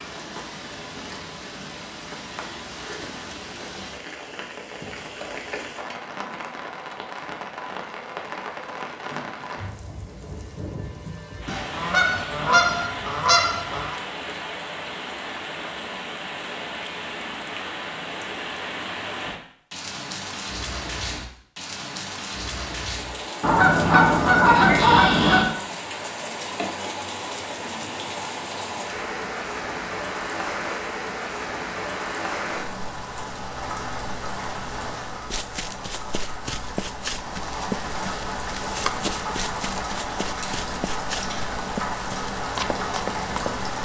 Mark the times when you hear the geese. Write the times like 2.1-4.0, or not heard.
11.4-13.9, 23.4-25.4.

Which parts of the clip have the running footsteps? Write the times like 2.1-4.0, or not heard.
35.3-43.5.